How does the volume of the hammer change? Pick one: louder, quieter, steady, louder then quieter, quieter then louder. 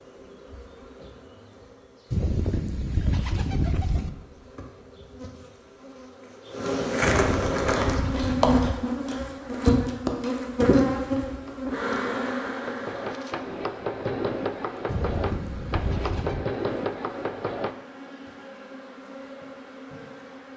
louder.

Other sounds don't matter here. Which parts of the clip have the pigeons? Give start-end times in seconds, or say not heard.
2.1-4.1, 7.0-8.8, 14.8-16.4.